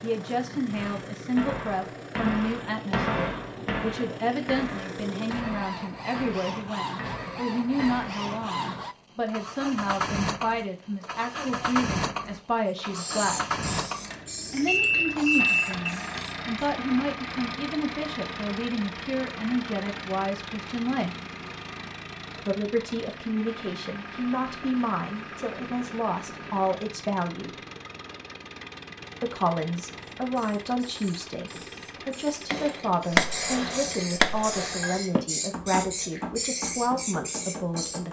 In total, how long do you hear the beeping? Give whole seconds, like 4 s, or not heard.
2 s.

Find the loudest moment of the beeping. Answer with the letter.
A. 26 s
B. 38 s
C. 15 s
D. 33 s
C.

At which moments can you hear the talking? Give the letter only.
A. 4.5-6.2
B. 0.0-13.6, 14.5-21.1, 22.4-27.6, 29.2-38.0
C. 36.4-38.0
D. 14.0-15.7
B.